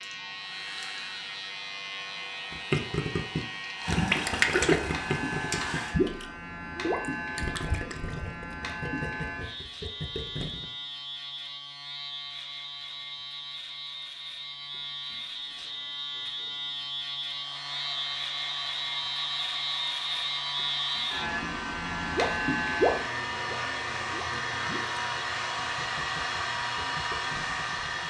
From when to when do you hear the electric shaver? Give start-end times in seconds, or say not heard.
0.0-28.0.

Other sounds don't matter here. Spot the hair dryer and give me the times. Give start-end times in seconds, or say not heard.
0.1-6.0, 17.3-28.0.